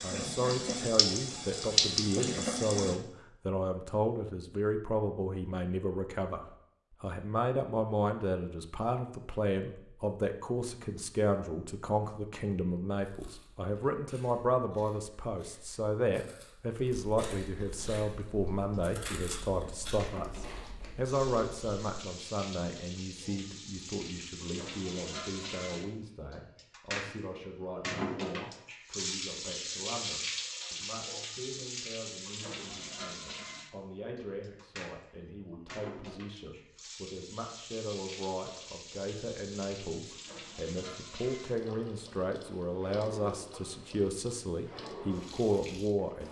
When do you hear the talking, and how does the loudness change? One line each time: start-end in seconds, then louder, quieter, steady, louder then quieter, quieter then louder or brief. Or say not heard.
0.0-46.2 quieter then louder.